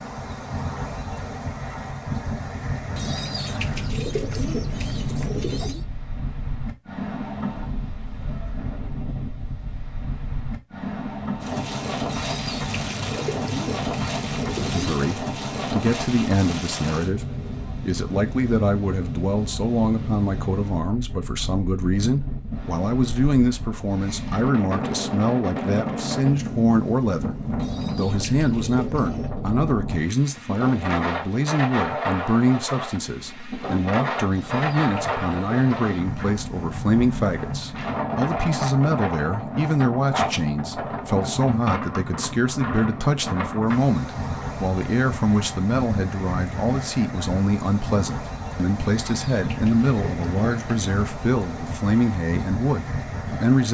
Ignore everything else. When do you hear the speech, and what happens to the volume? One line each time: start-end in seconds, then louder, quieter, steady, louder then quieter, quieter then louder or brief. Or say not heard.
14.6-53.7 steady.